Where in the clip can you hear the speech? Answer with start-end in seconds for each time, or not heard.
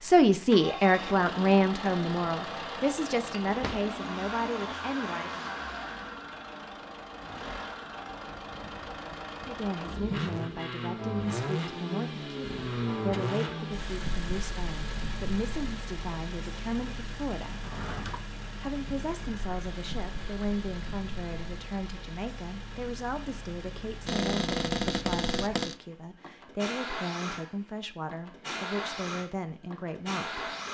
0.0-5.5, 9.4-17.6, 18.6-30.5.